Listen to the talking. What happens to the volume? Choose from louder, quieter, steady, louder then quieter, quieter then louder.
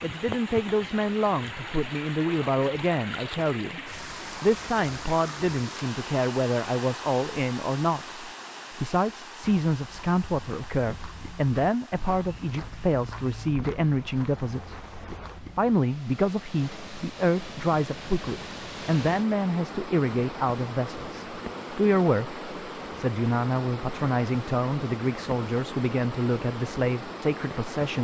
steady.